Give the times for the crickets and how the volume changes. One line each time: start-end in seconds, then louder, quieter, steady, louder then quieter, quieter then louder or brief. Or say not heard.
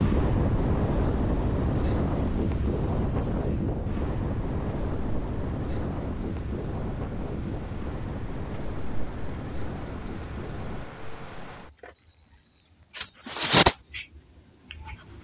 0.0-15.1 quieter then louder.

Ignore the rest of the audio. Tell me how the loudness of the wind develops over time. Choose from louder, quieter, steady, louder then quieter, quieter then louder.
quieter.